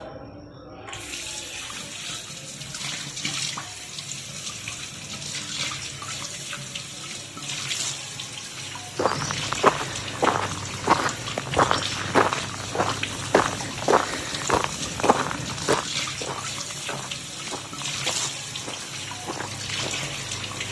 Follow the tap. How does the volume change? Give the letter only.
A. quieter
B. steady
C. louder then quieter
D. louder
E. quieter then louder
B.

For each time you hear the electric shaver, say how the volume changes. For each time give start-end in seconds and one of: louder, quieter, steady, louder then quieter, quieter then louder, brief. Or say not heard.
not heard.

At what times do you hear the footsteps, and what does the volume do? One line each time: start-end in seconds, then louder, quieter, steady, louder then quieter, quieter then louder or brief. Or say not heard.
8.9-20.1 quieter.